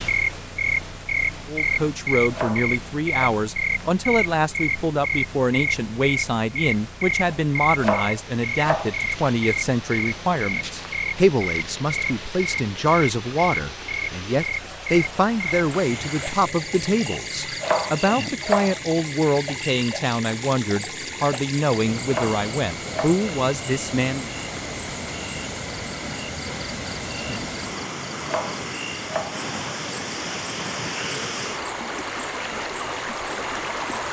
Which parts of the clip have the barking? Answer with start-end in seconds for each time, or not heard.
not heard.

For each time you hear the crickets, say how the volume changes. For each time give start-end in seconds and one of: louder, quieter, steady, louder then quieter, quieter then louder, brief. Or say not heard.
0.0-34.0 quieter.